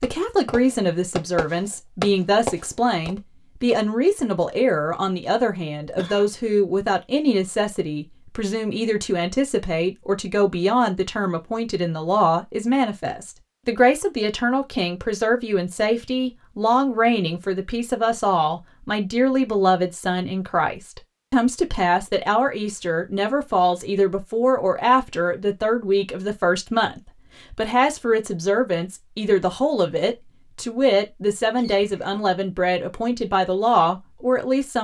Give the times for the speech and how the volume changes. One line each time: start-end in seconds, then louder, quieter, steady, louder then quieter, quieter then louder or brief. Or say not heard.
0.0-34.8 steady.